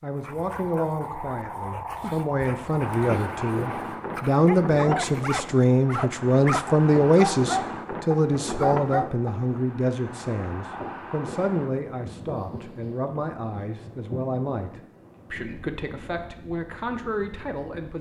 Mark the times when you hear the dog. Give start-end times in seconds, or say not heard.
0.1-9.5.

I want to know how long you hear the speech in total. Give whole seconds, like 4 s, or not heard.
18 s.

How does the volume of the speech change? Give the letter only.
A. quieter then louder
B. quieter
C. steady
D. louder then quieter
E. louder
D.